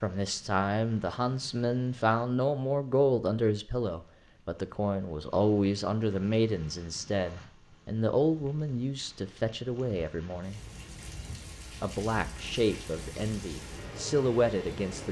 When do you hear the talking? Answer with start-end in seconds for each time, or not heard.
0.0-10.6, 11.8-15.0.